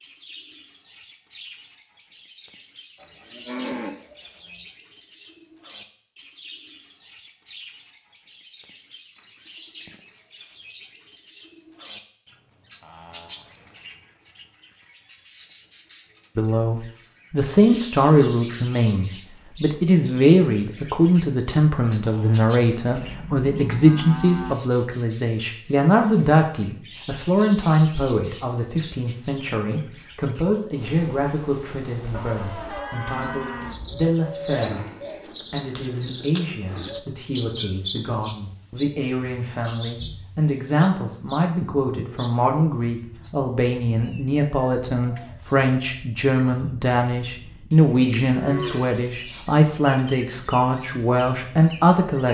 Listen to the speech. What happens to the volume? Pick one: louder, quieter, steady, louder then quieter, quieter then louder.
quieter then louder.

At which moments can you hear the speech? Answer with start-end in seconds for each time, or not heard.
16.4-52.2.